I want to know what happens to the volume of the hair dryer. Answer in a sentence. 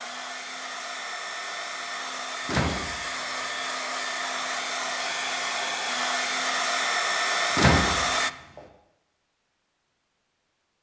The loudness of the hair dryer goes up.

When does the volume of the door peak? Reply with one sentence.
The volume of the door peaks at 8 seconds.